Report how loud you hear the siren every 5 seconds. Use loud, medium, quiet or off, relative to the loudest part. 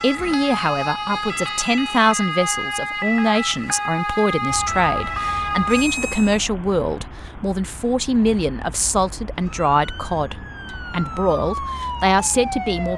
loud, loud, medium.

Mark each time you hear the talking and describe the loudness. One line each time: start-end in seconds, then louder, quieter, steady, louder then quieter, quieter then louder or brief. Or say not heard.
0.0-12.9 steady.